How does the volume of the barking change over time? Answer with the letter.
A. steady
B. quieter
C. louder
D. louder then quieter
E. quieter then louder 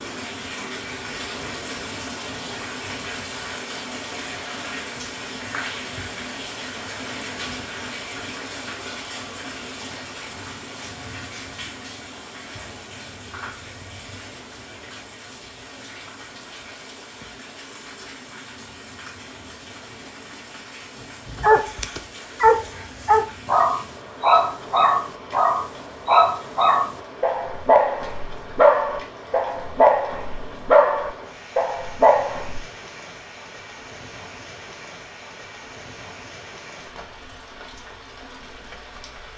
A.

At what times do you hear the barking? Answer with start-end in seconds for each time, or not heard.
21.2-32.6.